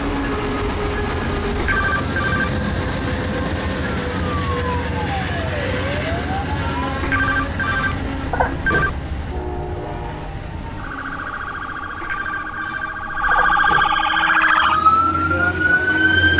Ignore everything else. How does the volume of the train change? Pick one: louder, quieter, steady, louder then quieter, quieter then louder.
quieter.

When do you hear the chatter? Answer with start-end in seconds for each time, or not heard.
not heard.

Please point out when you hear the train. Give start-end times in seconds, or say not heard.
0.0-16.3.